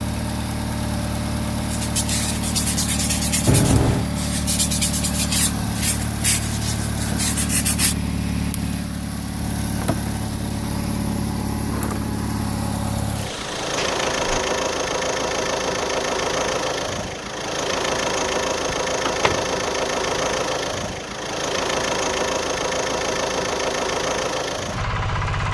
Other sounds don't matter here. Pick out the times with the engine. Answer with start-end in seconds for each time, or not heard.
0.0-25.4.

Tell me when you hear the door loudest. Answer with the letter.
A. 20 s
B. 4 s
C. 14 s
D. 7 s
B.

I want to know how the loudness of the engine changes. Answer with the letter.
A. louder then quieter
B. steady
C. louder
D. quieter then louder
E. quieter
B.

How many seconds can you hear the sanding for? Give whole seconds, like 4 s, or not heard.
6 s.